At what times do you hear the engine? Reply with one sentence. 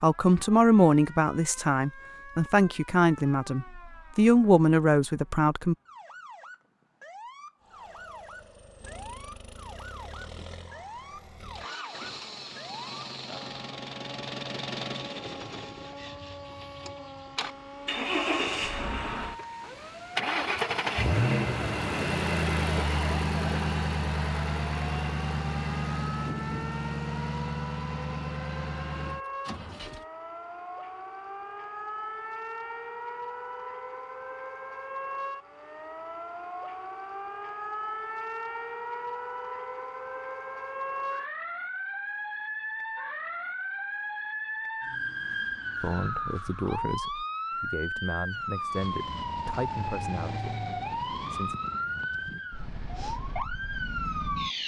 You can hear the engine from 7.6 to 30.1 s.